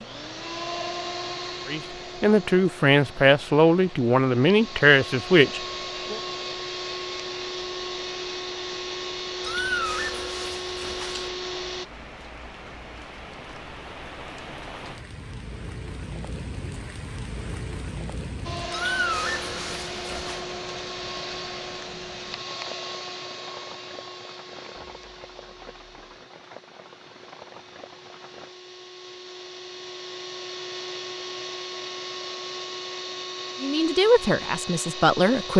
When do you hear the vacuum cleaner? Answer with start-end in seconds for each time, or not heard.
0.0-11.8, 18.4-35.5.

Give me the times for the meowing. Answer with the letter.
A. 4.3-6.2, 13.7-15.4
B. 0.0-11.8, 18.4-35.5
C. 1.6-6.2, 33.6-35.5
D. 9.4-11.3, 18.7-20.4
D.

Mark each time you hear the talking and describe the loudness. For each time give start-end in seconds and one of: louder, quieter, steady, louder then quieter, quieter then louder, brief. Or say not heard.
1.6-6.2 steady
33.6-35.5 brief.